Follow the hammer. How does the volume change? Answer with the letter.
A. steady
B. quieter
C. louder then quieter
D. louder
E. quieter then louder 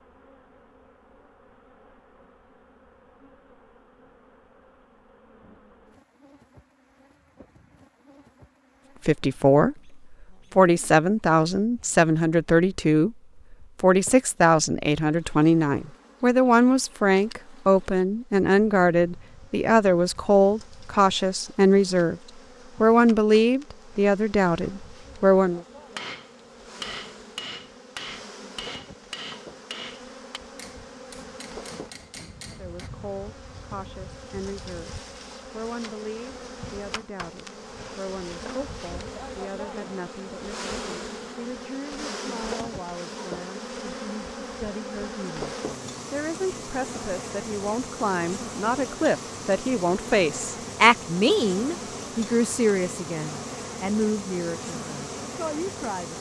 B.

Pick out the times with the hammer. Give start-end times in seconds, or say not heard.
25.9-32.9.